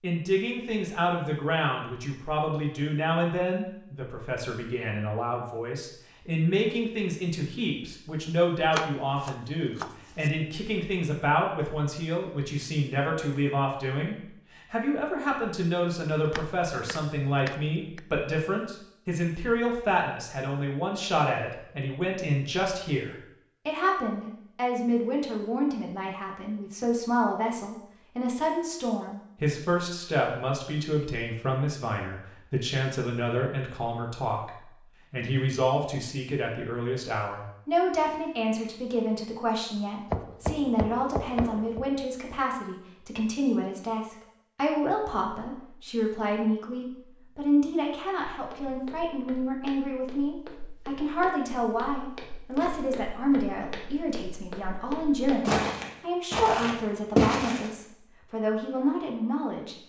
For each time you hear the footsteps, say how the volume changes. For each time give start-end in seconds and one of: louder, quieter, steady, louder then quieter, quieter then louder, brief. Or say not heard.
48.3-57.7 louder.